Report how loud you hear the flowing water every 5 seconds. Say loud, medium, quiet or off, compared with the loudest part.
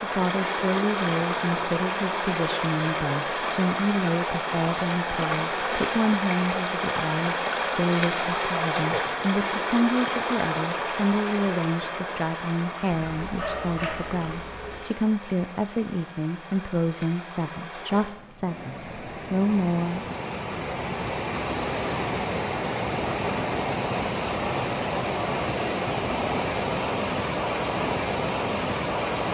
loud, loud, medium, quiet, loud, loud.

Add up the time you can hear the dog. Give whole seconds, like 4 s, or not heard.
2 s.